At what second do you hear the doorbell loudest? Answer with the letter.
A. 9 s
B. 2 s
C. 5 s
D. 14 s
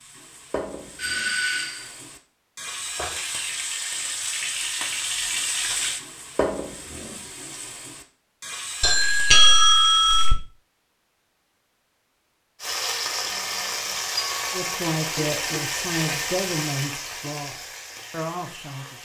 A.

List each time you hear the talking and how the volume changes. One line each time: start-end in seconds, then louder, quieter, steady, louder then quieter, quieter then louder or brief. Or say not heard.
14.5-18.9 quieter then louder.